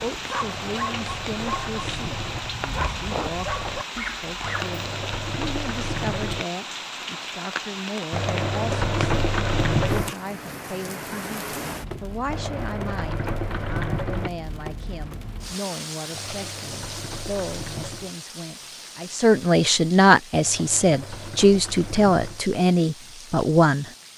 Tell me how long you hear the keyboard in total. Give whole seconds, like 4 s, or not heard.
12 s.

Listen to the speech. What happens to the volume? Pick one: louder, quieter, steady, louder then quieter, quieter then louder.
louder.